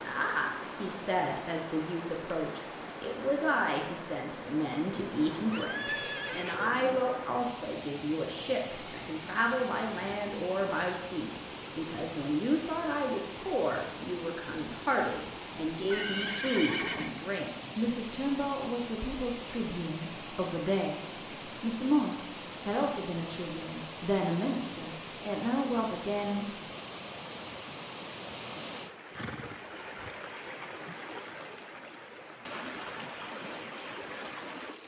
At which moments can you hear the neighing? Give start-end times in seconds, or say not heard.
5.5-7.0, 15.8-17.1, 29.1-30.1.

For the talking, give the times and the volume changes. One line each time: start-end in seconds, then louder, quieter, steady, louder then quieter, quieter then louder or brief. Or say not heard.
0.0-26.4 steady.